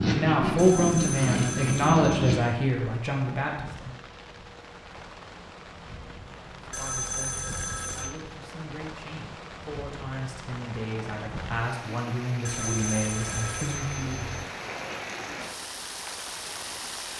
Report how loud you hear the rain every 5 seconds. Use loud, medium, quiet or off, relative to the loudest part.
medium, medium, loud, loud.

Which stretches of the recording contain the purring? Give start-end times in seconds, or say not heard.
0.0-2.5.